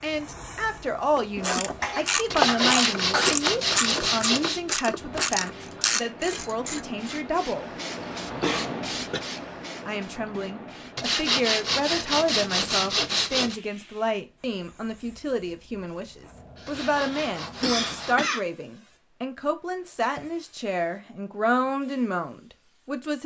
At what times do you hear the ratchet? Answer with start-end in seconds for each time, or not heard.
1.4-7.2.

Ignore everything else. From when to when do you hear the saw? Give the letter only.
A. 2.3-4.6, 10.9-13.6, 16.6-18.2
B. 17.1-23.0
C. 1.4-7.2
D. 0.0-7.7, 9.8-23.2
A.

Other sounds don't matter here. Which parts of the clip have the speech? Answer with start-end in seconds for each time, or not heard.
0.0-7.7, 9.8-23.2.